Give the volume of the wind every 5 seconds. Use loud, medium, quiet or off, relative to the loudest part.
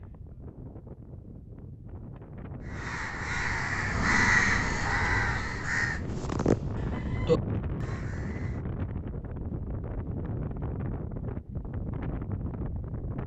medium, loud, loud.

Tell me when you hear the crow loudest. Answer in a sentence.
The loudest moment of the crow is at 4 seconds.